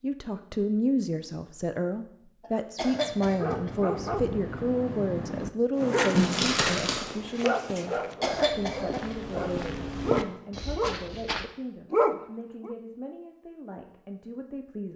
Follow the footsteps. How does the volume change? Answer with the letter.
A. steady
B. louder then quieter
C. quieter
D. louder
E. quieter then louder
D.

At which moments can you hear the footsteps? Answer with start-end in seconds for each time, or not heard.
5.8-11.5.